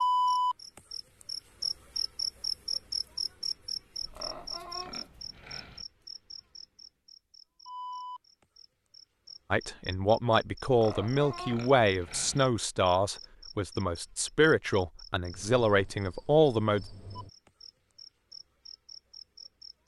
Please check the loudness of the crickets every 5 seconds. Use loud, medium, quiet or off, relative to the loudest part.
loud, quiet, quiet, quiet.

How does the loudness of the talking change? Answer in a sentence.
The volume of the talking stays about the same.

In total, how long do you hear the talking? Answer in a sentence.
The talking can be heard for 7 seconds in total.